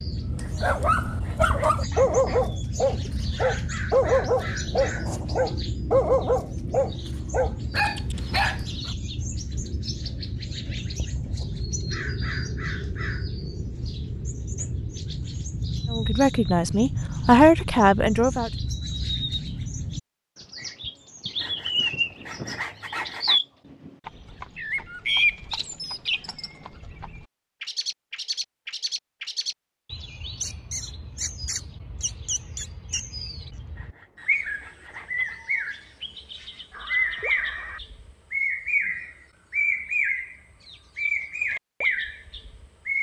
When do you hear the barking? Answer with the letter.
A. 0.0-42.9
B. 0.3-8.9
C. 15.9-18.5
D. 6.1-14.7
B.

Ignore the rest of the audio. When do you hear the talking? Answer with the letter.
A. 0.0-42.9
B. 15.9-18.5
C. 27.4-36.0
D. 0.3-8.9
B.